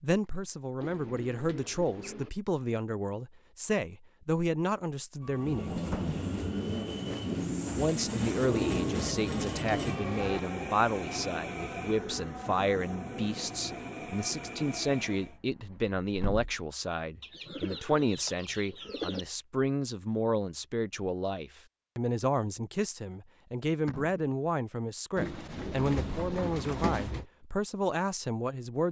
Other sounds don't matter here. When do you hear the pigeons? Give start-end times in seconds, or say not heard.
0.8-2.3, 8.4-10.4, 17.2-19.2, 25.1-27.2.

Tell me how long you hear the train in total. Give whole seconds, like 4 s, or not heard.
10 s.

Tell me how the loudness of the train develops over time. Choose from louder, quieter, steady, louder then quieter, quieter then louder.
quieter.